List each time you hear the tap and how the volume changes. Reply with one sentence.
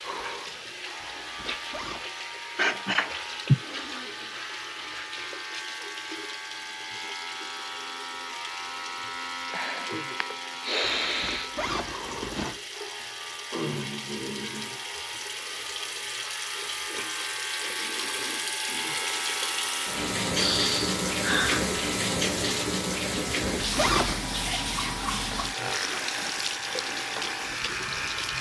The tap can be heard from 0.0 to 28.3 s, getting louder.